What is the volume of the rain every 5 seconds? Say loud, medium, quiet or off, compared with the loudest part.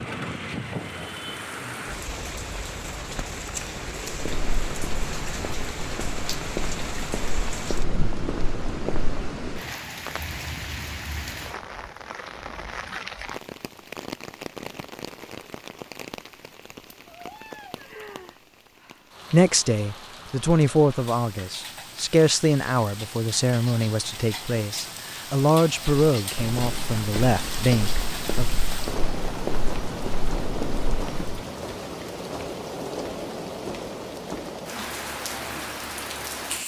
loud, loud, loud, medium, medium, loud, loud, loud.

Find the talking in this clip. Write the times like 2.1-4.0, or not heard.
19.3-28.4.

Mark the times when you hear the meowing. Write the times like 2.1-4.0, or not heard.
17.1-18.4.